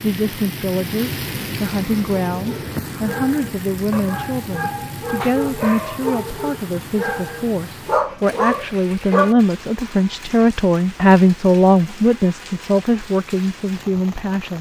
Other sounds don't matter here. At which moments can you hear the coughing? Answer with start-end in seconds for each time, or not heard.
not heard.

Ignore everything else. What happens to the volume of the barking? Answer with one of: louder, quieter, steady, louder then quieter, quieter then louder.
louder.